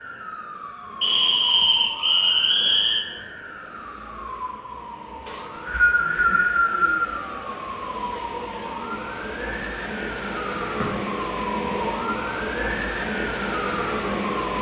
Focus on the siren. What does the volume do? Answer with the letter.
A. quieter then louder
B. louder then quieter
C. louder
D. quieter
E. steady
C.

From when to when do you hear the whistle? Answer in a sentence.
The whistle can be heard from 1.0 to 3.0 s and from 5.2 to 7.1 s.